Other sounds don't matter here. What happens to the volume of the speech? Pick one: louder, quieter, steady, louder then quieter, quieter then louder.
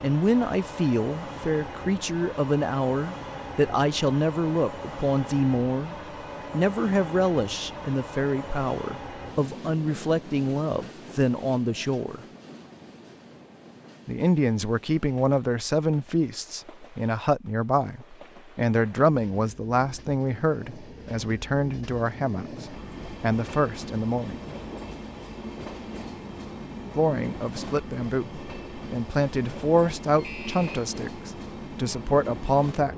steady.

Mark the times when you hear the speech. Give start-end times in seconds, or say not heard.
0.0-12.2, 14.1-24.4, 26.9-32.9.